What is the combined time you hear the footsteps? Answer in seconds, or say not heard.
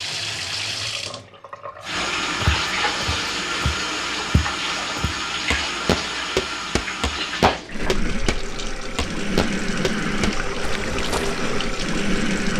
9 s.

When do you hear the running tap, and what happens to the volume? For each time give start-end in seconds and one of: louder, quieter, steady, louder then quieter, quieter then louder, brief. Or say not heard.
0.0-12.5 steady.